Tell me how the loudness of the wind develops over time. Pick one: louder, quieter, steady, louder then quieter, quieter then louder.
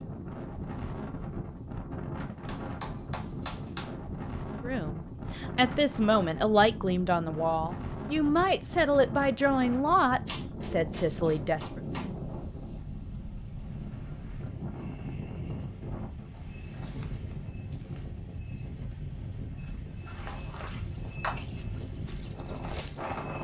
steady.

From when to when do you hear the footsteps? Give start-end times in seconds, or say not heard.
16.3-23.4.